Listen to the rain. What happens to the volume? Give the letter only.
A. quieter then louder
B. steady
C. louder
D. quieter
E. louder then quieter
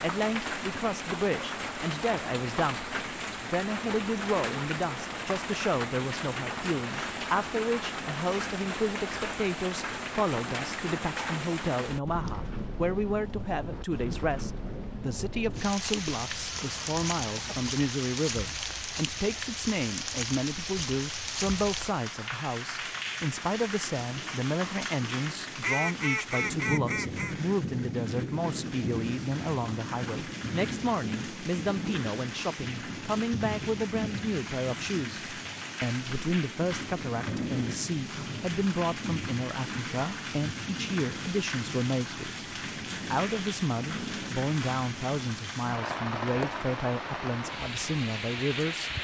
B.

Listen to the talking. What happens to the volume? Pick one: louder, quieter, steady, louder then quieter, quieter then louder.
steady.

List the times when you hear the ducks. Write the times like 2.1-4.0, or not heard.
16.1-17.8, 25.6-27.4.